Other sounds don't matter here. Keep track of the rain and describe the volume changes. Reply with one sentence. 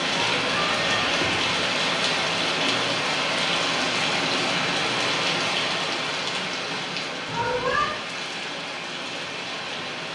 The loudness of the rain goes down.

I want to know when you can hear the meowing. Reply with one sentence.
The meowing can be heard from 0.2 to 1.4 s and from 7.2 to 8.0 s.